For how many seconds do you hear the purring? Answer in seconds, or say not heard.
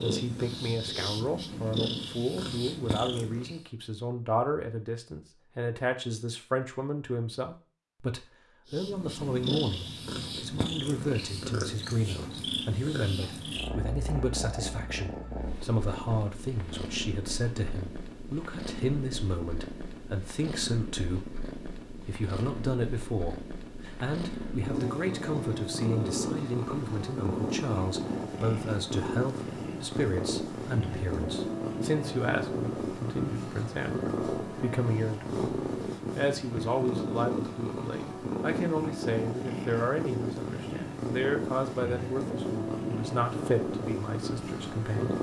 40 s.